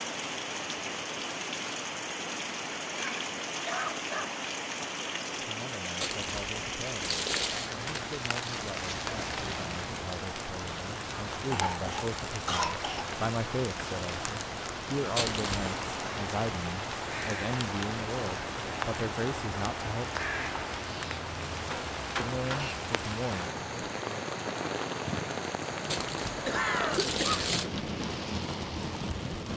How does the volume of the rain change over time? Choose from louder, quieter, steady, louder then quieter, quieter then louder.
steady.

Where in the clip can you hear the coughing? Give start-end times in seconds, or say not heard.
3.0-4.3, 11.4-13.1, 26.4-27.6.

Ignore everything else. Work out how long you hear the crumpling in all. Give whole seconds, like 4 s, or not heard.
4 s.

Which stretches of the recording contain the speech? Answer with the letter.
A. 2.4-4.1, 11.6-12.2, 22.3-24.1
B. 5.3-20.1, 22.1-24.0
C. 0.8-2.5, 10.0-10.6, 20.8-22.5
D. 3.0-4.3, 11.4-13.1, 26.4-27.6
B.